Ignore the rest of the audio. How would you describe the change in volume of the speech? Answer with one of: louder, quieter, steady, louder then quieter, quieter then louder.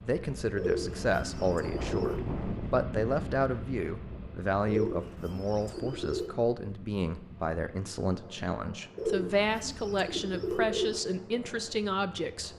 steady.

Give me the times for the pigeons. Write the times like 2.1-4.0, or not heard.
0.6-2.3, 4.7-6.3, 8.9-11.0.